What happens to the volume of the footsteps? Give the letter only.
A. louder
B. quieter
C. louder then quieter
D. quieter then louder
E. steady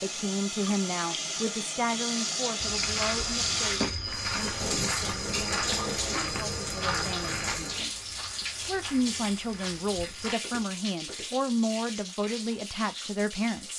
B.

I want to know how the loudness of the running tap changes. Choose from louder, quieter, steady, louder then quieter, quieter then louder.
quieter.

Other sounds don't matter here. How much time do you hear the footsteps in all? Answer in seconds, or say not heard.
9 s.